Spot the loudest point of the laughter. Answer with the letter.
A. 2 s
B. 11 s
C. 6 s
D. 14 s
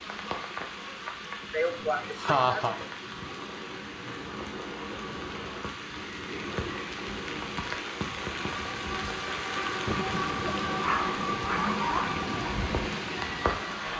A.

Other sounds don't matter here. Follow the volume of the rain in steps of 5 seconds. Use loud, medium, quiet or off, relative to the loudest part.
medium, loud, loud.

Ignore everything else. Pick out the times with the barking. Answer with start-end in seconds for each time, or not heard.
10.8-12.2.